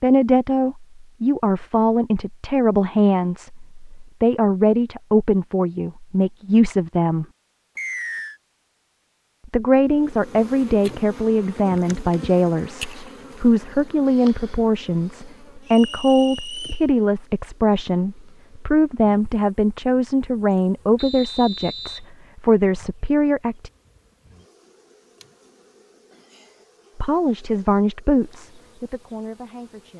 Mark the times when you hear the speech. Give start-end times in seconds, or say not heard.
0.0-7.2, 9.4-23.7, 26.9-29.9.